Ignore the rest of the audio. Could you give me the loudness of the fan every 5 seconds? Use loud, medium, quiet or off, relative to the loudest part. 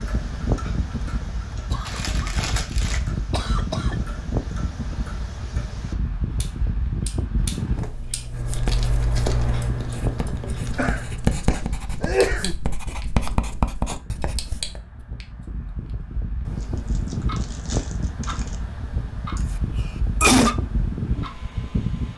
loud, loud, medium, loud, loud.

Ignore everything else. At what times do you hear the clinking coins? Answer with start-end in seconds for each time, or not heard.
not heard.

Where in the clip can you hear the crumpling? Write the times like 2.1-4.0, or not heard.
1.9-3.0, 8.5-10.9, 16.6-18.6.